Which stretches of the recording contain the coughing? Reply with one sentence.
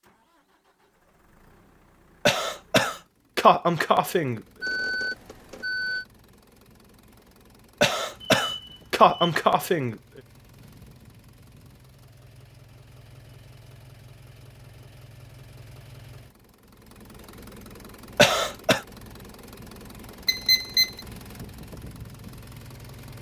The coughing can be heard from 2.2 to 4.4 s, from 7.8 to 9.9 s and from 18.1 to 18.8 s.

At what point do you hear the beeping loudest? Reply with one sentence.
The volume of the beeping peaks at 21 seconds.